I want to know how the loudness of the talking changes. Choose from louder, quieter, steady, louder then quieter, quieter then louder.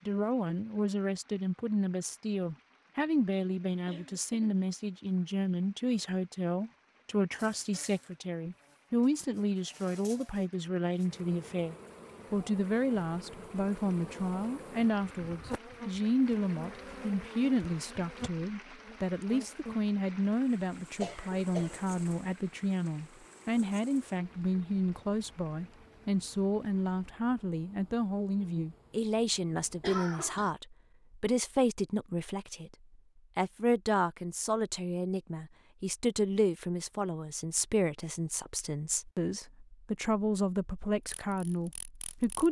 steady.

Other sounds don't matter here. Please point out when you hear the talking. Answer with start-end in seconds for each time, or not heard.
0.1-32.8, 33.4-42.4.